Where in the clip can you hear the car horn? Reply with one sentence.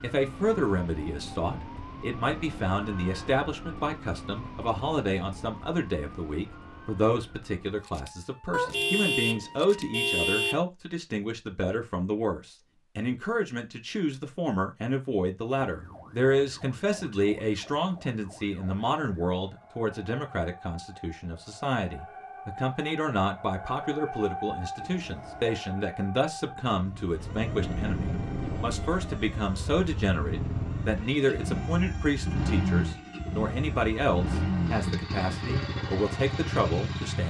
You can hear the car horn from 8.5 to 10.6 s and from 24.8 to 25.6 s.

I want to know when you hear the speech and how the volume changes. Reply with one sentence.
You can hear the speech from 0.0 to 37.2 s, at a steady volume.